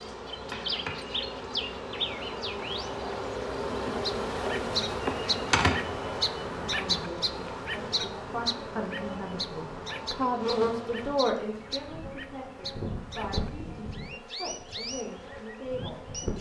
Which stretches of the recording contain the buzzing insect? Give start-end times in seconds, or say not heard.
0.0-16.3.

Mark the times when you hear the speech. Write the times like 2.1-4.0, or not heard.
6.7-16.1.